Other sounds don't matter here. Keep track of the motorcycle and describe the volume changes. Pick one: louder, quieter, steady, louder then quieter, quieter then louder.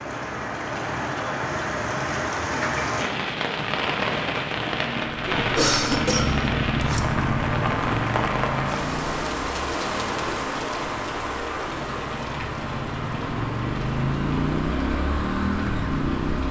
quieter then louder.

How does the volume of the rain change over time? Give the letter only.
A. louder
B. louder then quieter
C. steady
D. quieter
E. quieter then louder
D.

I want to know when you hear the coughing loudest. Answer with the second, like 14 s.
6 s.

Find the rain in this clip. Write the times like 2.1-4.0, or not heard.
0.0-16.4.